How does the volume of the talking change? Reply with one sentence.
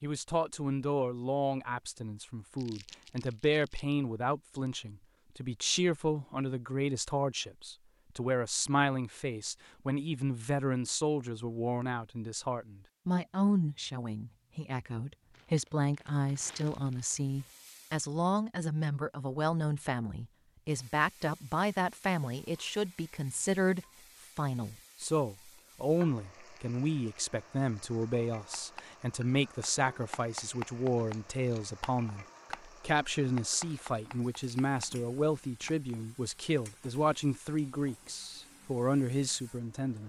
The volume of the talking stays about the same.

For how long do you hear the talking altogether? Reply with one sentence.
The talking can be heard for 40 seconds in total.